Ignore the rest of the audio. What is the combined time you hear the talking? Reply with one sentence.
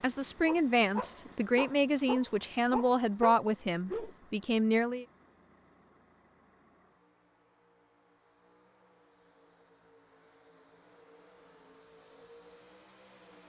You can hear the talking for 5 seconds altogether.